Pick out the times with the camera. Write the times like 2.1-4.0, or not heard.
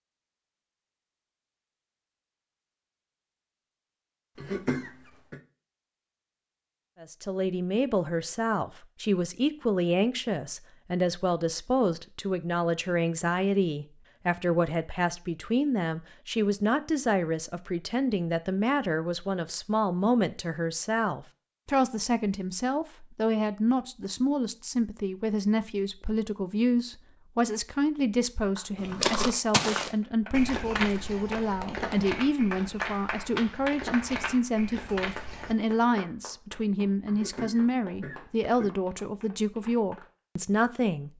not heard.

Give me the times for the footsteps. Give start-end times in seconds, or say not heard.
28.8-35.5.